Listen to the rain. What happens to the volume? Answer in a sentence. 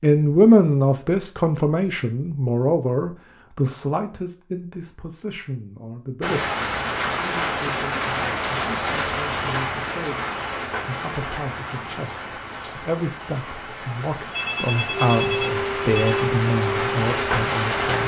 The loudness of the rain goes down, then up.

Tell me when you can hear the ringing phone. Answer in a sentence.
The ringing phone can be heard from 14.3 to 16.2 s.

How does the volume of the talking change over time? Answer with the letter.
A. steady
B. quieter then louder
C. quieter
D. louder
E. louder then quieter
B.